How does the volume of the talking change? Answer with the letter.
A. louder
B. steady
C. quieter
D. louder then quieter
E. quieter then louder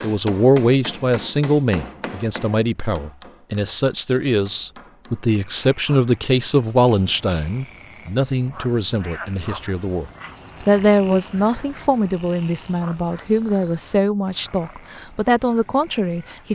B.